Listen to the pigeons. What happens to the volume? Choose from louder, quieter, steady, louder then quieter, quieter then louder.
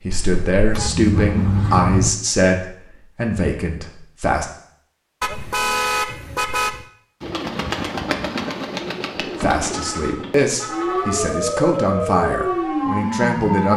quieter.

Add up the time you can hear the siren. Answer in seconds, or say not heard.
3 s.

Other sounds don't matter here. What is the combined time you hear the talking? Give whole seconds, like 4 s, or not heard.
9 s.